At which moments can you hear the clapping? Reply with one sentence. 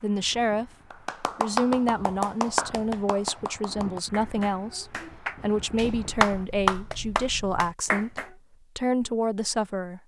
You can hear the clapping from 0.9 to 8.3 s.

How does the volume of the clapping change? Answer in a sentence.
The volume of the clapping goes down, then up.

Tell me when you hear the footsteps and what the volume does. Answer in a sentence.
You can't hear the footsteps here.